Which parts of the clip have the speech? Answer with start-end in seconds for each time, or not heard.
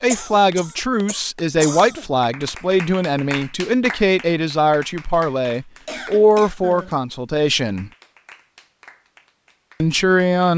0.0-7.9, 9.8-10.5.